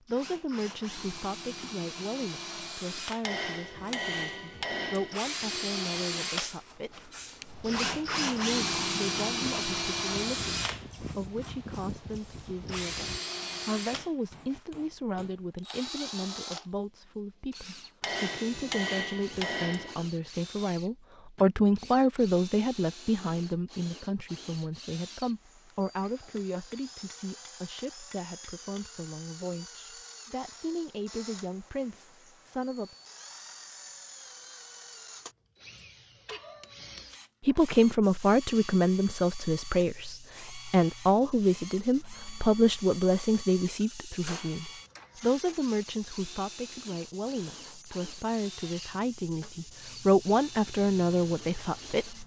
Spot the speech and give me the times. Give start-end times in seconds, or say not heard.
0.1-32.9, 37.4-52.2.